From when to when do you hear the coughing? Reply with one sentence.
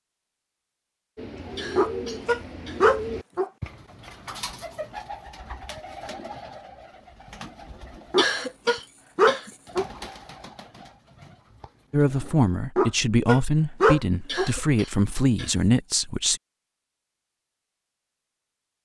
You can hear the coughing from 1.6 to 3.4 s, from 8.2 to 9.6 s and from 14.2 to 16.1 s.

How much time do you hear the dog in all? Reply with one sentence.
You can hear the dog for 5 seconds altogether.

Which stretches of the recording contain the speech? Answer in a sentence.
The speech can be heard from 11.9 to 16.4 s.